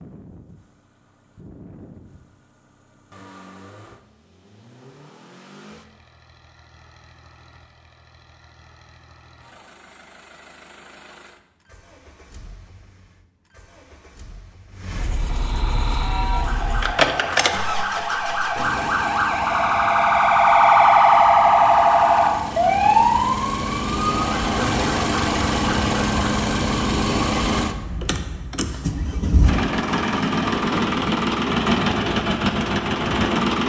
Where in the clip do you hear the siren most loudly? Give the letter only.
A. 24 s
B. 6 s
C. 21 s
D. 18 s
C.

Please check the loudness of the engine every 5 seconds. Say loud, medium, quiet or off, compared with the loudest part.
quiet, quiet, quiet, medium, medium, loud, loud.